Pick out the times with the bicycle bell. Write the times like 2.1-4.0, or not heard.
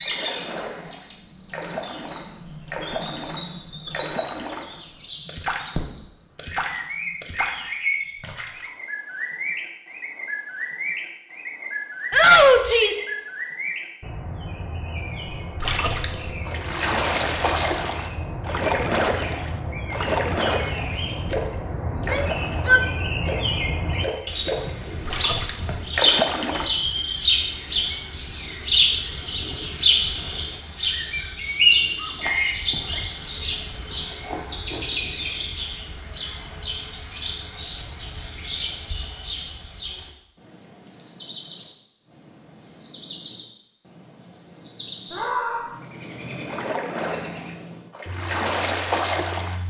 not heard.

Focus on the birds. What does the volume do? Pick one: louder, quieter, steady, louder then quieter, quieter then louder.
louder then quieter.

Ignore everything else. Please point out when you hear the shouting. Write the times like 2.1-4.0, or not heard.
12.1-13.1, 21.9-22.9, 45.1-45.8.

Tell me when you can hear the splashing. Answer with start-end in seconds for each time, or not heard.
0.0-8.7, 15.2-26.8, 46.5-49.6.